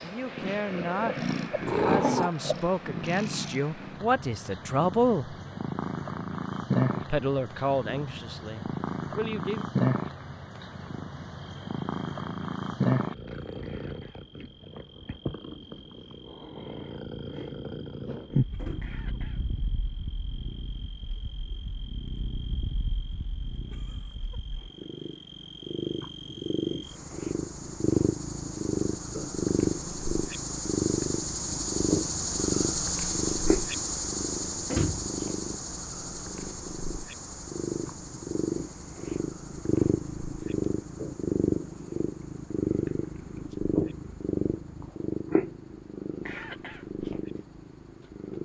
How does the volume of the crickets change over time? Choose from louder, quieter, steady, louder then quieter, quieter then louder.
louder then quieter.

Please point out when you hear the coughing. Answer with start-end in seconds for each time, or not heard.
13.6-14.3, 18.8-19.5, 46.2-46.9.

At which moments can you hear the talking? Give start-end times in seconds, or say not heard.
0.0-5.3, 7.0-9.7.